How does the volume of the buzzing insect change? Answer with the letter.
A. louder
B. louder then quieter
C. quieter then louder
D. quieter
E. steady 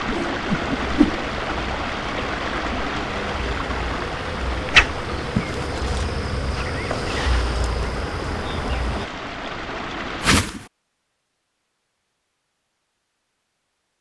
A.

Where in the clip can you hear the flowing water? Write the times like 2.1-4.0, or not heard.
0.0-10.4.